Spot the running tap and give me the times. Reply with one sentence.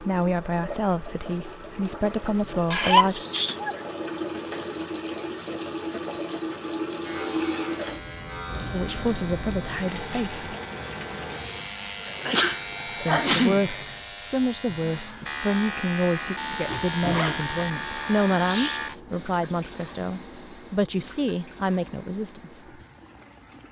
The running tap can be heard from 0.0 to 23.6 s.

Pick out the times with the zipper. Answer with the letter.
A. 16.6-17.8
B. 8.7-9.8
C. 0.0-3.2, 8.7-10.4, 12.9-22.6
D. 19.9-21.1
A.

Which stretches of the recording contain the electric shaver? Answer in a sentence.
You can hear the electric shaver from 7.0 to 18.9 s.